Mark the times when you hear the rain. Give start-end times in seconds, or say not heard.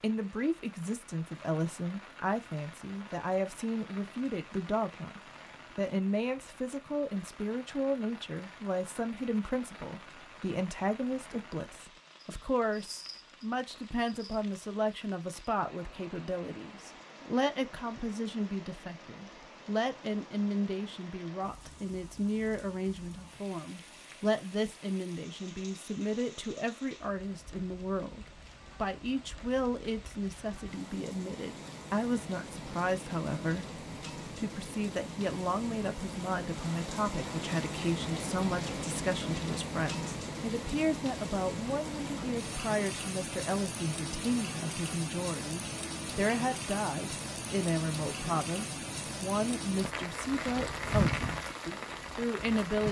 0.0-52.8.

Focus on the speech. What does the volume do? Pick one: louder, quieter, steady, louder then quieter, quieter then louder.
steady.